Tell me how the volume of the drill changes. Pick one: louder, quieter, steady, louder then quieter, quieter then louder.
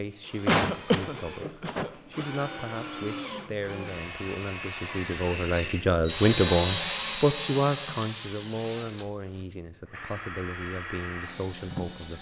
louder then quieter.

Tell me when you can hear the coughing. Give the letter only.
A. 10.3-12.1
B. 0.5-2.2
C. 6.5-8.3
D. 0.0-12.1
B.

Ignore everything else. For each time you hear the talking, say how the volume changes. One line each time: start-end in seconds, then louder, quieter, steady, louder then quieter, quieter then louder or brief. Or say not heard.
0.0-12.1 louder then quieter.